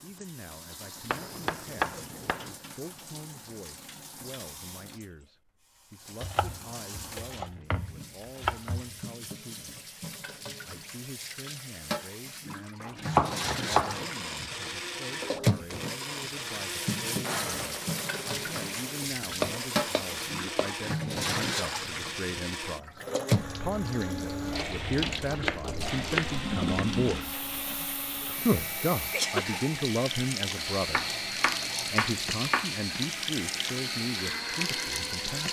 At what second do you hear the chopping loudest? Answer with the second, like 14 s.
13 s.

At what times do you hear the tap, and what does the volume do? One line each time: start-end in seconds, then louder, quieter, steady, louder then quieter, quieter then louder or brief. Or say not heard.
0.0-35.4 louder.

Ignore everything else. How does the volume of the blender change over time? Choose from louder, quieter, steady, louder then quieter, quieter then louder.
steady.